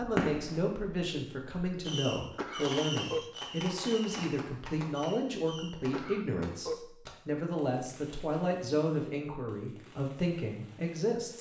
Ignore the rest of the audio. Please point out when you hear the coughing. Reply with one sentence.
You can hear the coughing from 2.4 to 3.3 s and from 5.9 to 6.8 s.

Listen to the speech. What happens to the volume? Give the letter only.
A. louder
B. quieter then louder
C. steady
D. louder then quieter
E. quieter
C.